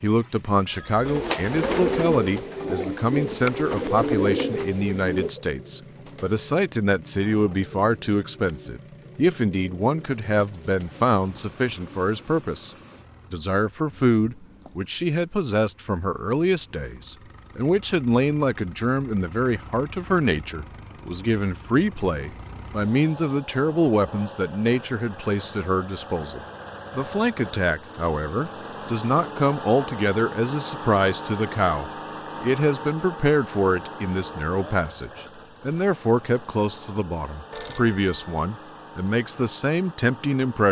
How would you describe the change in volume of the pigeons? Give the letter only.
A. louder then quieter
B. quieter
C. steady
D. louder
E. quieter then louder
B.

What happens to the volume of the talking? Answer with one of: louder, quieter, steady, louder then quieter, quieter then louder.
steady.